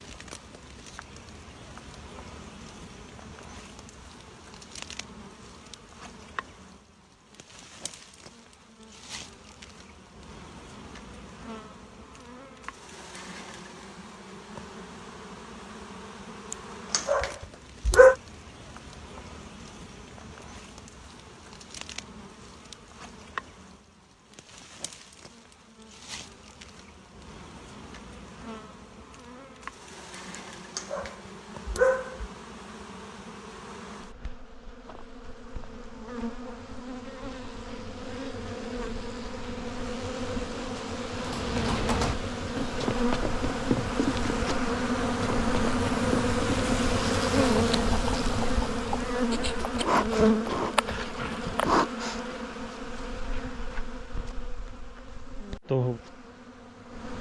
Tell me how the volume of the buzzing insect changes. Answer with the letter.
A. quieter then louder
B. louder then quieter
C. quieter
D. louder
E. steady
D.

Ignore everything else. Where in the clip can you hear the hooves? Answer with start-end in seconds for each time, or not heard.
41.1-51.9.